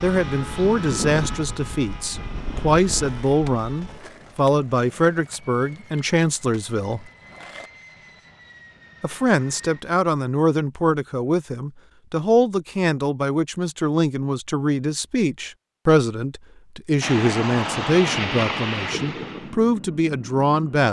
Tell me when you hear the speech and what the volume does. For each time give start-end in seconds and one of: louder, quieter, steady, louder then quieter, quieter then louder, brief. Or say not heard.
0.0-7.0 steady
9.0-20.8 steady.